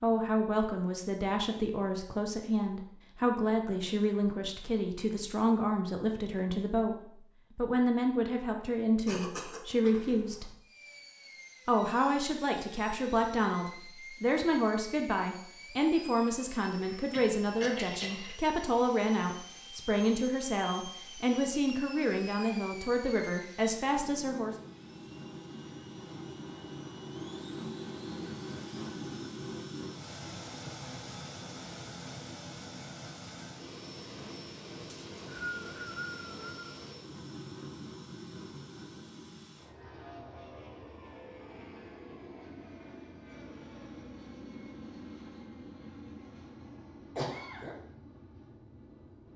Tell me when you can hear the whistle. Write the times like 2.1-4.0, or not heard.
34.9-36.8.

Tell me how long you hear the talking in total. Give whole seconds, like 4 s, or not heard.
23 s.